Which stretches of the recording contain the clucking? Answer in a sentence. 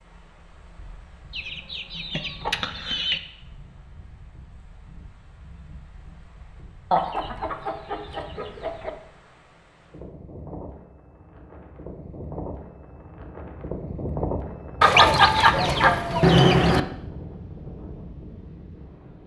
The clucking can be heard from 1.3 to 3.2 s, from 6.9 to 8.9 s and from 14.8 to 16.8 s.